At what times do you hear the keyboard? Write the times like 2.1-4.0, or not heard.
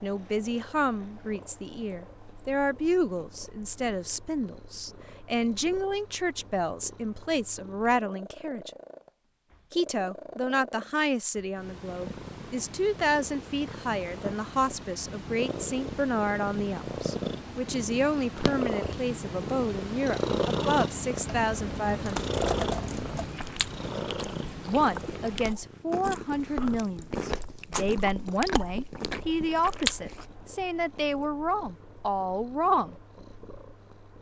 21.2-23.2.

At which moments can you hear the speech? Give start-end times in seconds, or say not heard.
0.0-8.7, 9.7-22.3, 24.6-33.0.